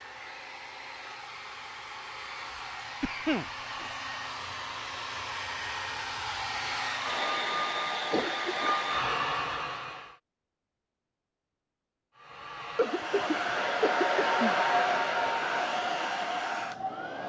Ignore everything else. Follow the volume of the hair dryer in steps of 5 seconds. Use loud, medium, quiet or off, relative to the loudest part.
medium, loud, loud, loud.